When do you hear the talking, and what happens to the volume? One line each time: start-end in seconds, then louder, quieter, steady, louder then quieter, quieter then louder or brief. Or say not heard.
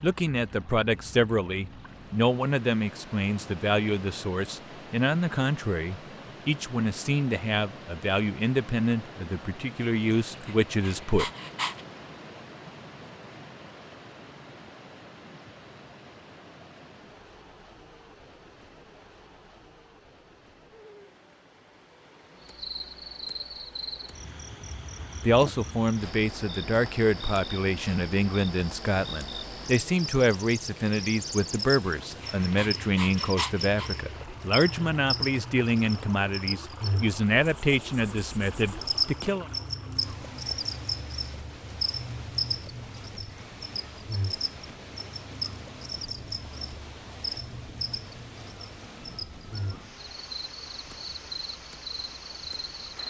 0.0-11.3 steady
25.2-39.5 steady.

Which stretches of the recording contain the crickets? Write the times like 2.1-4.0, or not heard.
22.4-53.0.